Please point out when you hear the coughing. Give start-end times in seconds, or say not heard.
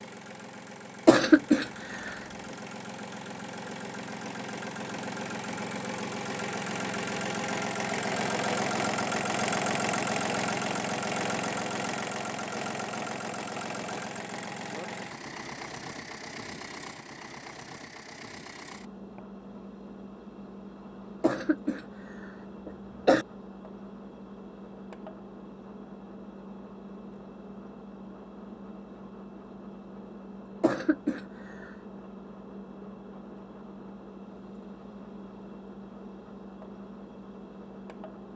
1.1-2.1, 21.2-23.2, 30.6-31.7.